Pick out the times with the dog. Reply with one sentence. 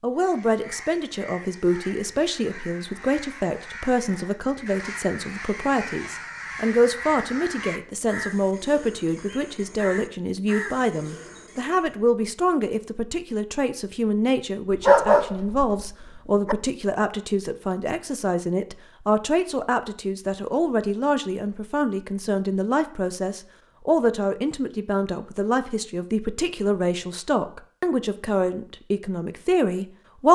The dog can be heard from 14.7 to 16.6 s.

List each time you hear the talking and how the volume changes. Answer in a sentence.
The talking can be heard from 0.0 to 30.3 s, at a steady volume.